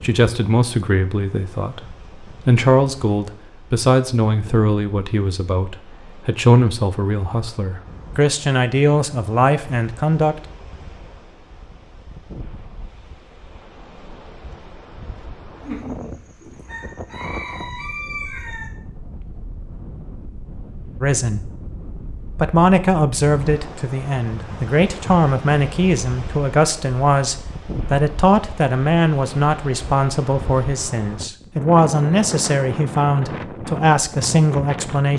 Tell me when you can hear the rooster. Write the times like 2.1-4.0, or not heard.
15.6-18.7.